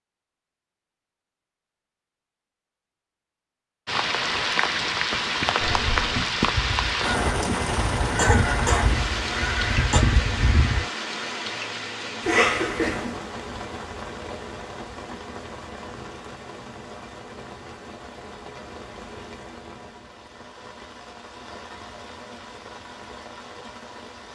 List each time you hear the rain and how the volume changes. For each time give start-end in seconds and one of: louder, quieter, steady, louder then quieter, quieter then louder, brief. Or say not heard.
3.9-24.3 quieter.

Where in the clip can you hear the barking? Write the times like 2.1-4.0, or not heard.
not heard.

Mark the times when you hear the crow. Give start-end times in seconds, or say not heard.
5.6-10.8.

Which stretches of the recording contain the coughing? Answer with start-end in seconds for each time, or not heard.
8.2-10.0, 12.2-13.2.